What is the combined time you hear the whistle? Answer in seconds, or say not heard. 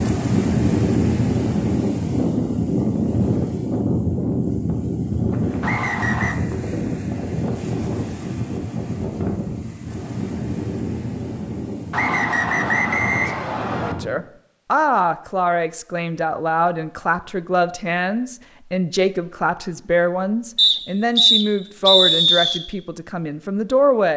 5 s.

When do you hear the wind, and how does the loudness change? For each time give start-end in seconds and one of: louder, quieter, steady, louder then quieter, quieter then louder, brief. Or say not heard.
0.0-14.2 quieter.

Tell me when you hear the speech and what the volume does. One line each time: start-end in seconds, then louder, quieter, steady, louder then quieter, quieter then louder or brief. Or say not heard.
13.8-24.1 steady.